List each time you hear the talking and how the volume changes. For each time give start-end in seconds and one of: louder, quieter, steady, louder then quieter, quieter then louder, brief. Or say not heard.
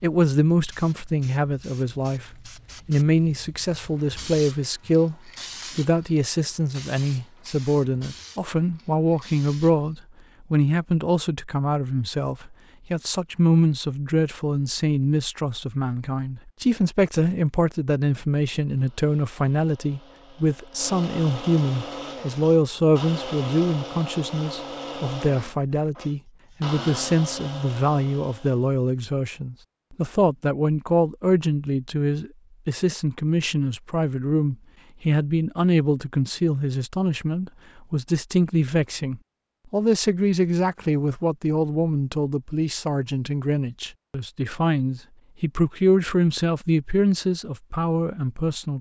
0.0-48.7 steady.